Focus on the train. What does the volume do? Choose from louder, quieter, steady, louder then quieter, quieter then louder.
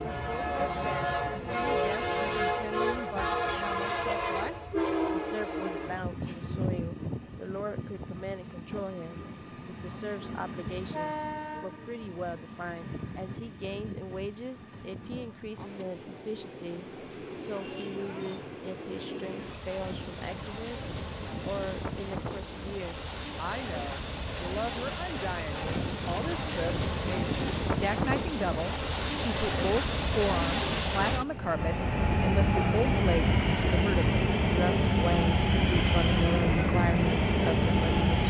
quieter then louder.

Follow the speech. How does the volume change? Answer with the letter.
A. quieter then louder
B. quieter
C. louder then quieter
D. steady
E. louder
E.